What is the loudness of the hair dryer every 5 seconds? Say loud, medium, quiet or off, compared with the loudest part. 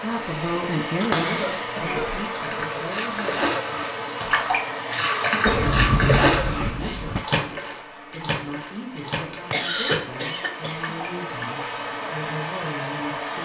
loud, medium, loud.